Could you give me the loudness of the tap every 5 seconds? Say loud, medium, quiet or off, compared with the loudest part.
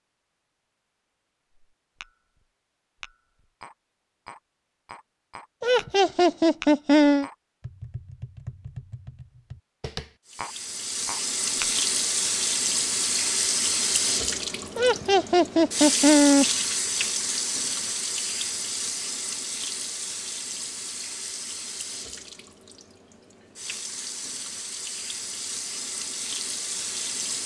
off, off, loud, loud, medium, medium.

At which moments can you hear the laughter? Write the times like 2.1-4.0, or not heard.
5.6-7.3, 14.8-16.4.